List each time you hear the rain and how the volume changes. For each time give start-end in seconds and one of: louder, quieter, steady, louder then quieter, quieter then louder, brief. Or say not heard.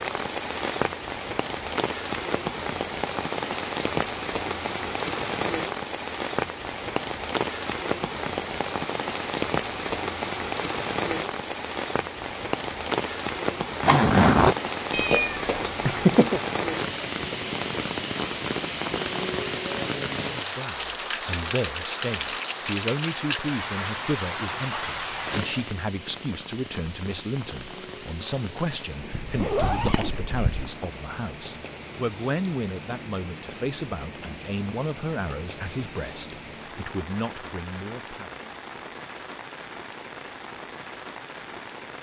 0.0-41.9 quieter.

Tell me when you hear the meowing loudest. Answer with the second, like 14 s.
16 s.